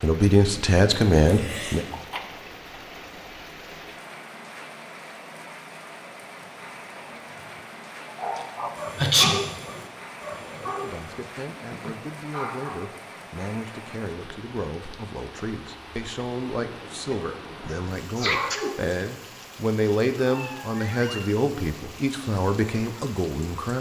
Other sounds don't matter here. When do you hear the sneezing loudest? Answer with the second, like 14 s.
9 s.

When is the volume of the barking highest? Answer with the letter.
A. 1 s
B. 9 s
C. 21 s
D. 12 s
B.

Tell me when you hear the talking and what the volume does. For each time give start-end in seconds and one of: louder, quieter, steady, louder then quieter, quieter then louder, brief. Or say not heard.
0.0-1.9 brief
10.8-23.7 louder.